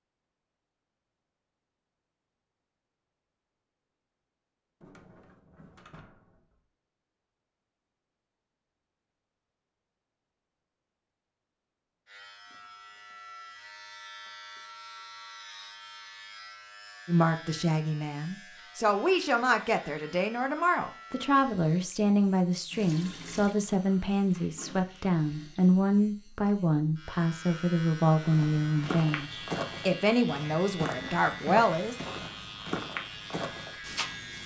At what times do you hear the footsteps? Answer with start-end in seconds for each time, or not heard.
28.1-34.4.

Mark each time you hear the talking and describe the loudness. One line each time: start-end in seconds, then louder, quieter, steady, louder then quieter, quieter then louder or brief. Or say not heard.
17.1-31.9 steady.